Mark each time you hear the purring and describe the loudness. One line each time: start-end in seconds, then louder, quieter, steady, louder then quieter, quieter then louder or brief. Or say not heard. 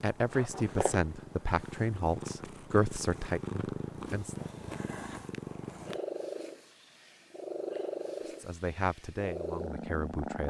0.0-10.4 steady.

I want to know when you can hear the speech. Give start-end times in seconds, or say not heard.
0.0-4.5, 8.4-10.4.